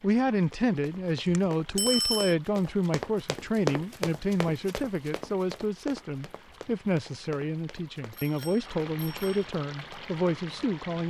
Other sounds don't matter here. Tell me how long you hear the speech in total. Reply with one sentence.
You can hear the speech for 11 seconds altogether.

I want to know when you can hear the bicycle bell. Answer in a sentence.
You can hear the bicycle bell from 1.2 to 2.4 s and from 8.1 to 9.5 s.